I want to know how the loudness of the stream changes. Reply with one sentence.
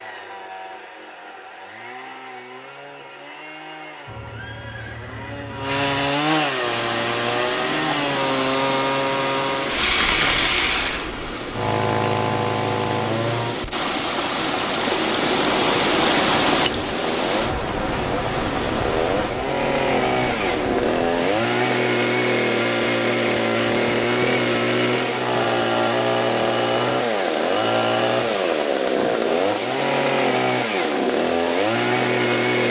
The volume of the stream goes up, then down.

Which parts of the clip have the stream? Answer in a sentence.
The stream can be heard from 6.5 to 32.6 s.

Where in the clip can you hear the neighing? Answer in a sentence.
You can hear the neighing from 4.0 to 5.9 s.